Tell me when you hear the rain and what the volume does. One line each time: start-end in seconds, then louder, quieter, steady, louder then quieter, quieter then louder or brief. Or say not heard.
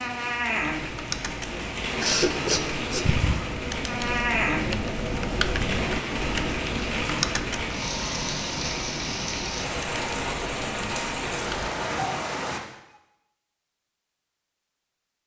0.0-12.6 steady.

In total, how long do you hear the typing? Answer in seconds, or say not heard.
11 s.